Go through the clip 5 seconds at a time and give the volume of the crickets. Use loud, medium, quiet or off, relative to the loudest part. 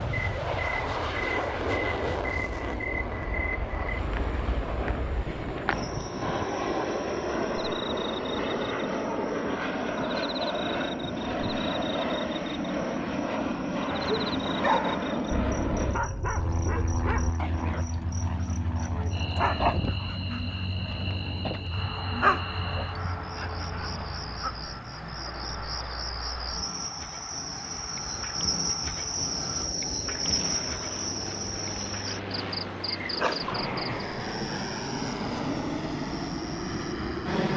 loud, medium, medium, medium, medium, loud, loud, quiet.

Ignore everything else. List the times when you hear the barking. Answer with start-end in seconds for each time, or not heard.
13.8-24.5.